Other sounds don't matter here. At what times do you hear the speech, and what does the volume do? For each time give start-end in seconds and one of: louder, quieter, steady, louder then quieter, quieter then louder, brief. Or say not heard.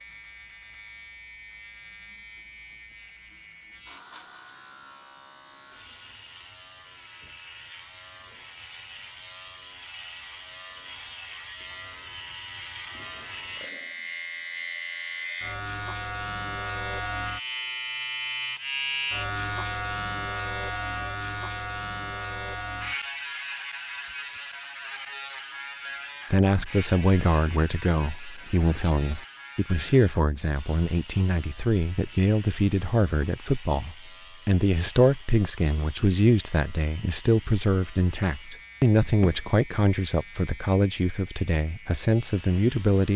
26.3-43.1 steady.